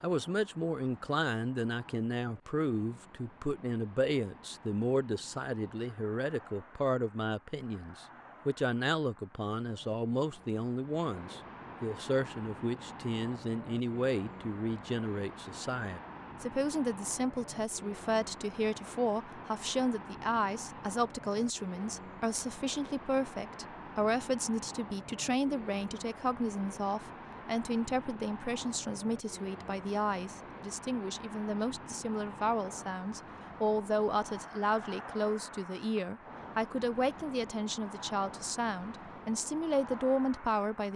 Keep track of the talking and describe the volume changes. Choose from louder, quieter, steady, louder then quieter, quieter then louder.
steady.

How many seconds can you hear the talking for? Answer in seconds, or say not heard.
41 s.